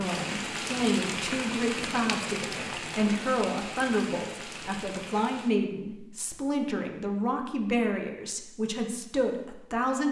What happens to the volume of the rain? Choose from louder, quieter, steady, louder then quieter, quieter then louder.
quieter.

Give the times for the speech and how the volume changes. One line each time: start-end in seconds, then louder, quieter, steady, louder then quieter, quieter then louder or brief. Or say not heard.
0.0-10.0 steady.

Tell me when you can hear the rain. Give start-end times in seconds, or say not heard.
0.0-5.5.